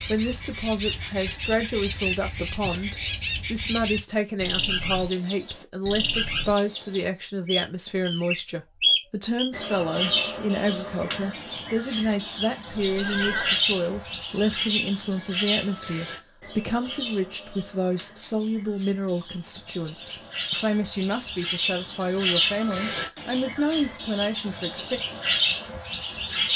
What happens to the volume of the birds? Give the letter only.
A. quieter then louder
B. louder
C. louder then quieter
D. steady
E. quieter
A.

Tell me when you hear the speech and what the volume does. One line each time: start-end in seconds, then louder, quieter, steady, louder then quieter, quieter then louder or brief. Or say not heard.
0.0-25.0 steady.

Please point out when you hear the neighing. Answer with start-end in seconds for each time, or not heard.
12.8-13.6.